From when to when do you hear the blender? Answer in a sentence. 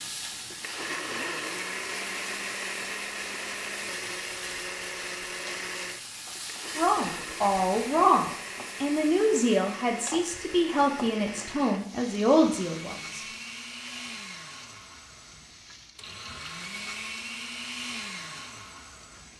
You can hear the blender from 0.0 to 19.3 s.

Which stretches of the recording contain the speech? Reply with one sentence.
The speech can be heard from 6.8 to 13.2 s.